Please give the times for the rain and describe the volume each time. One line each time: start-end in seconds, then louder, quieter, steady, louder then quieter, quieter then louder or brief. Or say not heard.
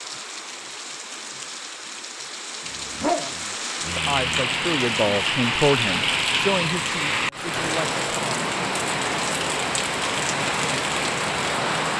0.0-11.9 louder.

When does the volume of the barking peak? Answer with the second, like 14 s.
3 s.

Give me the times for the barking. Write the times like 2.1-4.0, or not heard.
2.6-4.5.